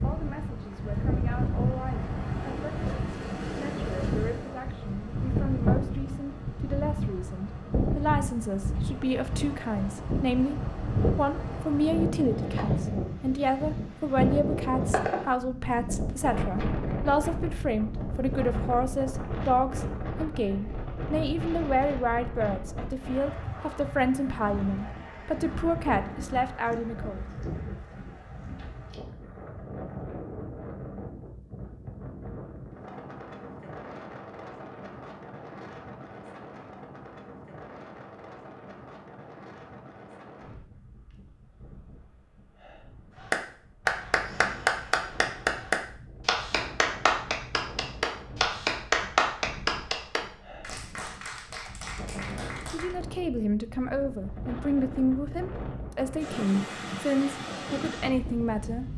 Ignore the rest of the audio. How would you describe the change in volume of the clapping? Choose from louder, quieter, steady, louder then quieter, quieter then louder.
quieter.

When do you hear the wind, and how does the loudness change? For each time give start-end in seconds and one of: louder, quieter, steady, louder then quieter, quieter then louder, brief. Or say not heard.
0.0-58.9 quieter then louder.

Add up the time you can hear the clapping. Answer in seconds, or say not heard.
10 s.